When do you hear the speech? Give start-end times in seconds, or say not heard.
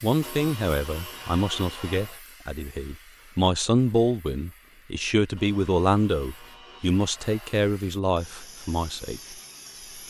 0.0-9.3.